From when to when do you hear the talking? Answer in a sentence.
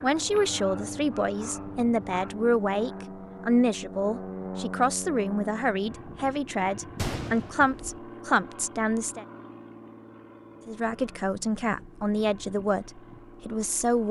The talking can be heard from 0.0 to 9.2 s and from 10.7 to 14.0 s.